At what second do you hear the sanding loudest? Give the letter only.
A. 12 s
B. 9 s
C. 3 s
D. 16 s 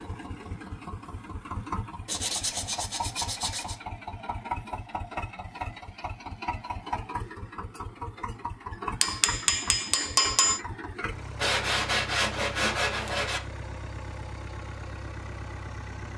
A.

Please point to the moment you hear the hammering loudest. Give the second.
10 s.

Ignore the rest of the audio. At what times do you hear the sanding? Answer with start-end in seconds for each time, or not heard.
2.0-3.8, 11.3-13.4.